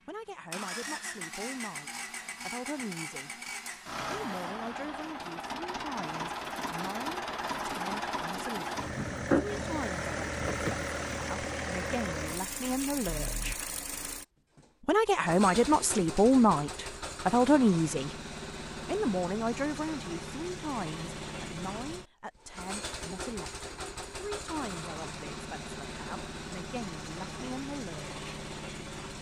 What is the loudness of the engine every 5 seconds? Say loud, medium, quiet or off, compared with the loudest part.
medium, loud, loud, medium, medium, medium.